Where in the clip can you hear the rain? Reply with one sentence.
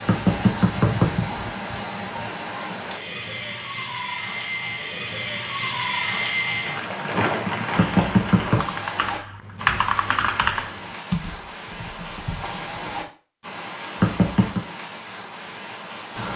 The rain can be heard from 0.0 to 16.3 s.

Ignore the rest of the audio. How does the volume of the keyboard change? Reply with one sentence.
The volume of the keyboard goes down.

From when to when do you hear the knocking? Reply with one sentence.
The knocking can be heard from 0.1 to 1.5 s, from 7.8 to 8.7 s and from 14.0 to 14.6 s.